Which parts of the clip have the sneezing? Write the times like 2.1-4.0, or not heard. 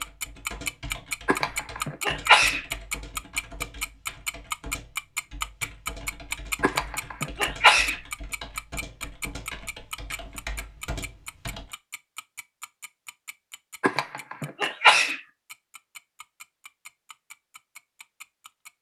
1.2-2.6, 6.6-8.0, 13.8-15.2.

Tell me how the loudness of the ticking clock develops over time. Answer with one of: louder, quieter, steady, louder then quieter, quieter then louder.
quieter.